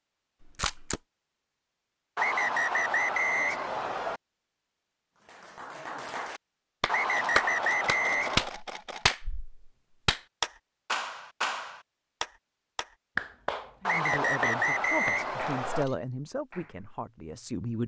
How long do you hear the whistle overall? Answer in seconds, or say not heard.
6 s.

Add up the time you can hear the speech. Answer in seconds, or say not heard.
4 s.